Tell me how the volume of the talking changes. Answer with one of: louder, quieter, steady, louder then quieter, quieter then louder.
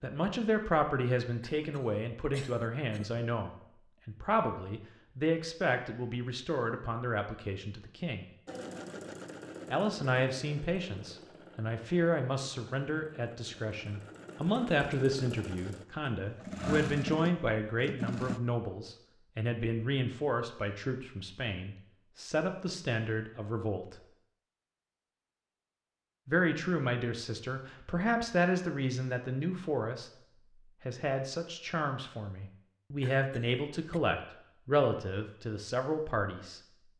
steady.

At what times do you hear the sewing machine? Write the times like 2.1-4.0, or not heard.
8.4-18.4.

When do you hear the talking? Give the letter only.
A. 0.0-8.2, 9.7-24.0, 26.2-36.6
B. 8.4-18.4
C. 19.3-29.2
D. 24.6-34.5
A.